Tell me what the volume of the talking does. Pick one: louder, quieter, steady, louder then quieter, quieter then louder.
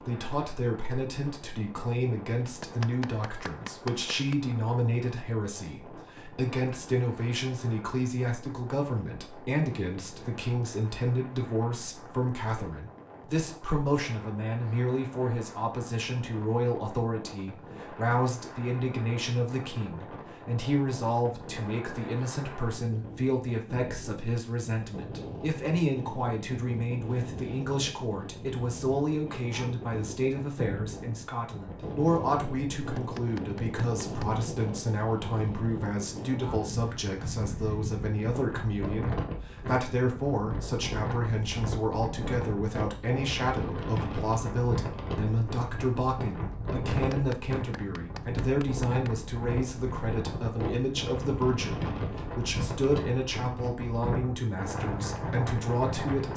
steady.